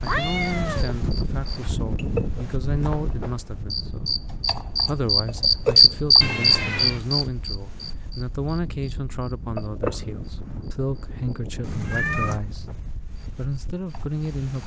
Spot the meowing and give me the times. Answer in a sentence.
The meowing can be heard from 0.1 to 0.9 s, from 6.2 to 7.0 s and from 11.6 to 12.4 s.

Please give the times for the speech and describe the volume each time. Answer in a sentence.
The speech can be heard from 0.0 to 14.6 s, at a steady volume.